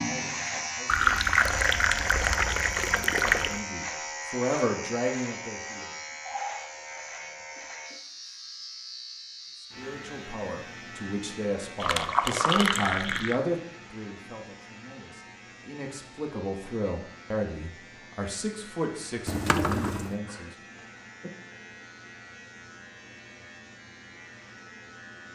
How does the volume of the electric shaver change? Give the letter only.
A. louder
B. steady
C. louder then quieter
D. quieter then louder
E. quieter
E.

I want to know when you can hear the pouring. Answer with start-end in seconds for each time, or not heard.
0.8-3.6, 11.8-13.3, 19.2-20.1.